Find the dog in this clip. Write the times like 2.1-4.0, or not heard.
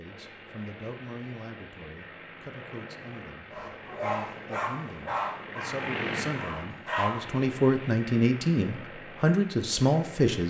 3.5-7.2.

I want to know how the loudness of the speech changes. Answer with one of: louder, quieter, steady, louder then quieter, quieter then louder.
louder.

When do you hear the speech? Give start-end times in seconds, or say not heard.
0.0-10.4.